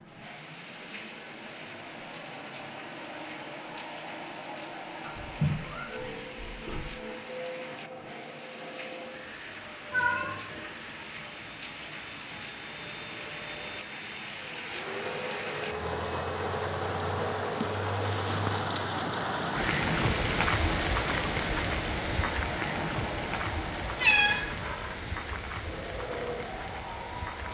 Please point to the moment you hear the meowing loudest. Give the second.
24 s.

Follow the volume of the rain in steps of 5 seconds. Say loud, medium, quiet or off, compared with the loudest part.
quiet, quiet, medium, loud, loud, medium.